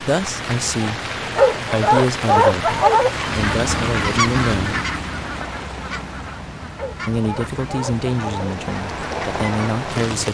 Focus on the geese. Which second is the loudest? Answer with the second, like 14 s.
4 s.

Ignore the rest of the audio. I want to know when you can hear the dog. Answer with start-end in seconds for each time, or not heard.
1.2-3.1, 6.6-8.6.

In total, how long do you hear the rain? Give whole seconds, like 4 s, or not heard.
10 s.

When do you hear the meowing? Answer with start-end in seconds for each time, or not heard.
not heard.